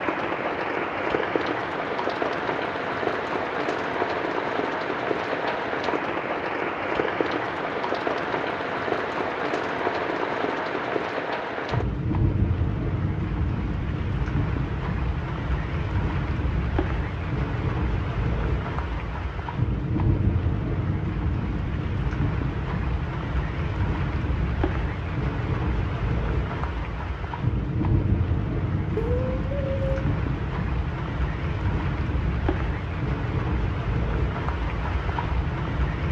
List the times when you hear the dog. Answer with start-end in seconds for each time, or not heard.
not heard.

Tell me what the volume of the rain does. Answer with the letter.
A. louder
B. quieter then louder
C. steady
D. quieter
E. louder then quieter
C.